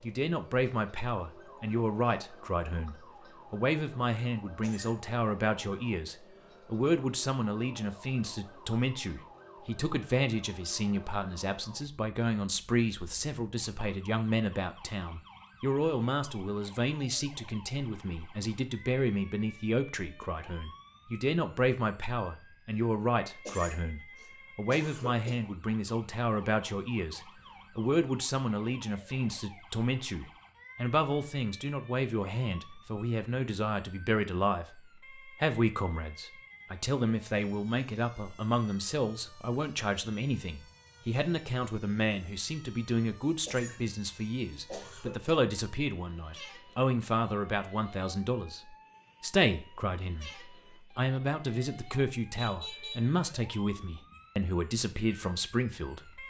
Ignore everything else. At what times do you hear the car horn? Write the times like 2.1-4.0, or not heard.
52.4-53.0.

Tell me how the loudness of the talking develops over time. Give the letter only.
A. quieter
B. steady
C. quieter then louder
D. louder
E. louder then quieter
B.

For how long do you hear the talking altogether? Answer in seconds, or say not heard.
56 s.